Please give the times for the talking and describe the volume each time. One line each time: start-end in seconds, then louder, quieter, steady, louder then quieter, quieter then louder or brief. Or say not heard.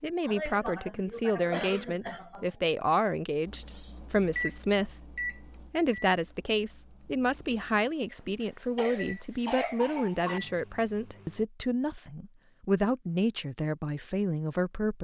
0.0-5.0 steady
5.7-14.9 steady.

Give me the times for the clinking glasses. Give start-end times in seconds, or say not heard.
not heard.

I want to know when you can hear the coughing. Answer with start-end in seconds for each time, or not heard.
0.2-2.5, 8.4-10.4.